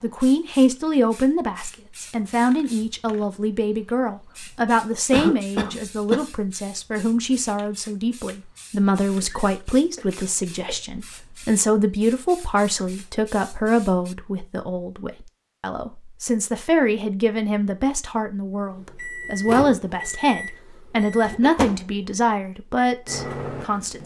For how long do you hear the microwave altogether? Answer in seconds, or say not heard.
5 s.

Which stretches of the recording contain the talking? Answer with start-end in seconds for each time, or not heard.
0.0-24.0.